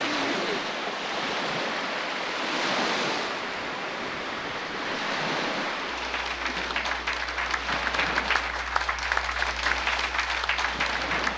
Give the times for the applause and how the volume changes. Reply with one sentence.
The applause can be heard from 0.0 to 11.3 s, getting louder.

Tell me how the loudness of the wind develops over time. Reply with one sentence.
The volume of the wind goes down.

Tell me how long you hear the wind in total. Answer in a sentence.
The wind can be heard for 11 seconds in total.